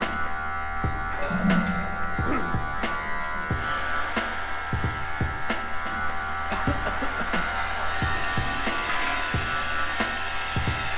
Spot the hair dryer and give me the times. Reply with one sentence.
You can hear the hair dryer from 3.5 to 10.9 s.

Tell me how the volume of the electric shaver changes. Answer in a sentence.
The volume of the electric shaver stays about the same.